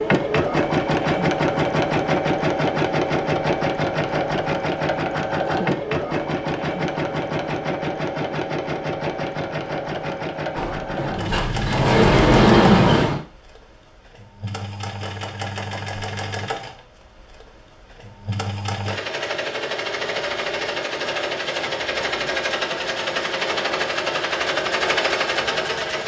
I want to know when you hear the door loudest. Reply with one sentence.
The loudest moment of the door is at 13 seconds.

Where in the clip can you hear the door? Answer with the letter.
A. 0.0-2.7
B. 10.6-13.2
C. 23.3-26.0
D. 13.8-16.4
B.